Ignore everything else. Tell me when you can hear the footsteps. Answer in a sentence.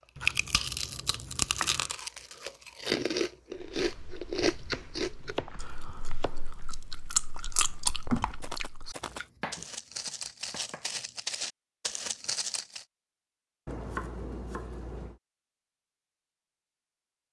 The footsteps can be heard from 3.5 to 12.8 s.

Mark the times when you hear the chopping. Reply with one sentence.
The chopping can be heard from 0.1 to 1.9 s, from 4.4 to 6.5 s, from 9.3 to 10.8 s and from 13.7 to 15.2 s.